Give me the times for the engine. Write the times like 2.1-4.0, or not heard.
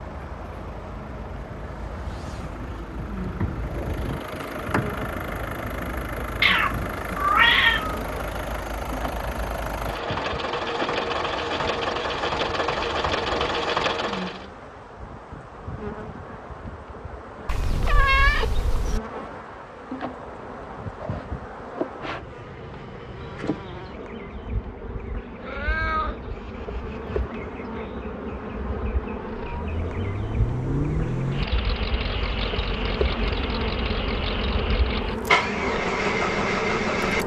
0.0-14.4, 29.2-37.2.